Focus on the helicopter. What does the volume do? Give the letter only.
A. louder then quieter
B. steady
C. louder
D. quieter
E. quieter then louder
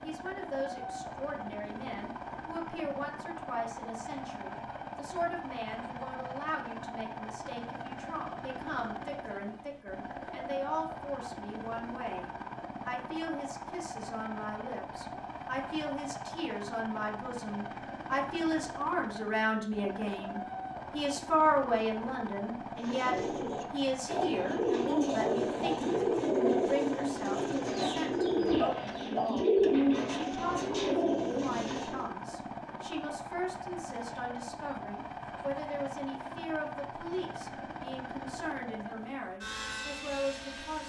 B.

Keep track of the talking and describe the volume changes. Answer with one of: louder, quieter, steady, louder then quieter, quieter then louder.
louder then quieter.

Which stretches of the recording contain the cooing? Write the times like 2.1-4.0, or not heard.
22.8-32.0.